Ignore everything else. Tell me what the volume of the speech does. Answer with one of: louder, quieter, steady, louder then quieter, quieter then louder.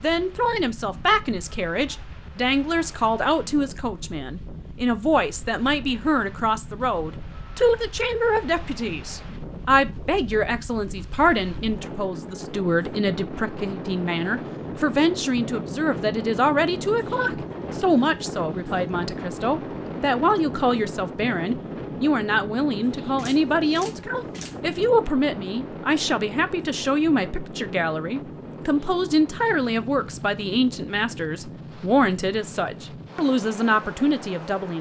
steady.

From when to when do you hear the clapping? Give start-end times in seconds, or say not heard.
not heard.